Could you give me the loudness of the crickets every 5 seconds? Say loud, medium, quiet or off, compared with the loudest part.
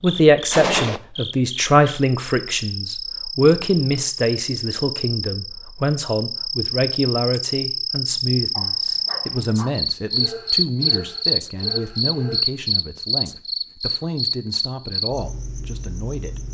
medium, loud, loud, medium.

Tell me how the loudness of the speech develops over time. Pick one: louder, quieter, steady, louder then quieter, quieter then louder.
quieter.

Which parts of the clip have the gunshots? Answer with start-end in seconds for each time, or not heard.
0.5-1.0.